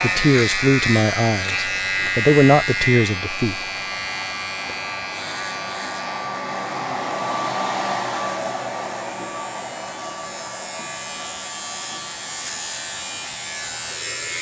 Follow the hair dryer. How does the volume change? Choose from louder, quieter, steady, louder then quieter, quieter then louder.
louder then quieter.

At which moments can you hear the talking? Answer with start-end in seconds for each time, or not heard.
0.0-3.6.